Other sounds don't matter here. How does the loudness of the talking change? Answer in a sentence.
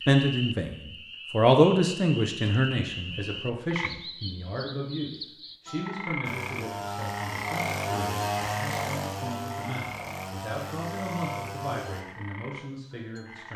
The volume of the talking goes down.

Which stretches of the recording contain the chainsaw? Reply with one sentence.
You can hear the chainsaw from 6.2 to 12.1 s.